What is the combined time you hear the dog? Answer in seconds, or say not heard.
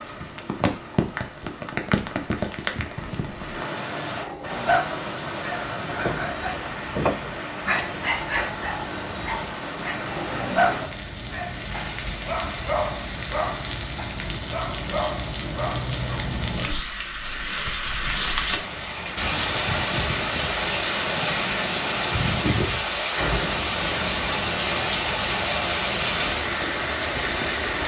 12 s.